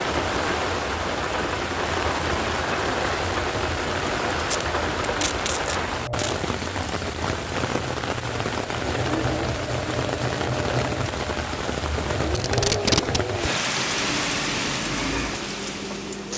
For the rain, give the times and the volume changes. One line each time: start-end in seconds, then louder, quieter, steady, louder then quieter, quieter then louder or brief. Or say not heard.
0.0-16.3 steady.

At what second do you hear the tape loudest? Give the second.
13 s.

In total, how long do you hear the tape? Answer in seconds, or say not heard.
3 s.